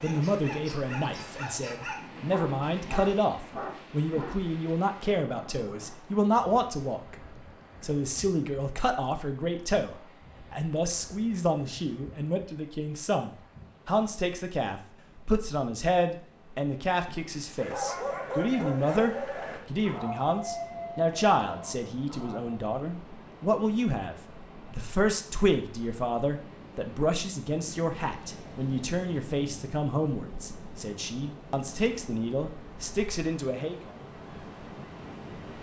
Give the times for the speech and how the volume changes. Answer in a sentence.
The speech can be heard from 0.0 to 33.9 s, at a steady volume.